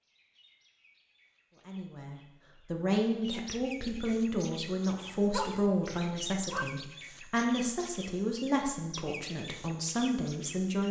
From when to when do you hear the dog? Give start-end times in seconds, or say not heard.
5.0-6.8.